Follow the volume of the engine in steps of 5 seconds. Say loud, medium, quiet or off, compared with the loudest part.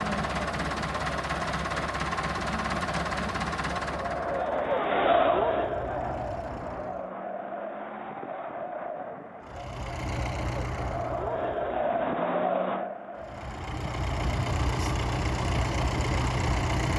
loud, quiet, medium, loud.